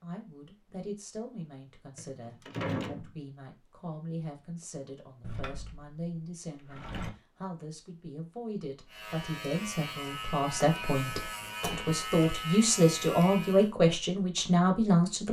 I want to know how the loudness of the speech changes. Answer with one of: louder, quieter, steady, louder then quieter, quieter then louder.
louder.